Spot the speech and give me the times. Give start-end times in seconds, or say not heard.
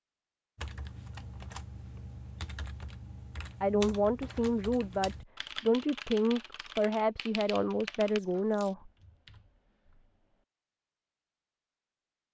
3.6-8.9.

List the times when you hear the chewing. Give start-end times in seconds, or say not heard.
not heard.